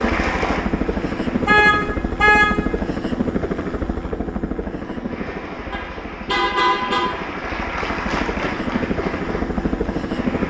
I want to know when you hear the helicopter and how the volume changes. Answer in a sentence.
You can hear the helicopter from 0.0 to 10.4 s, getting quieter then louder.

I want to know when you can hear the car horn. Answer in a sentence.
The car horn can be heard from 1.4 to 2.7 s and from 5.7 to 7.1 s.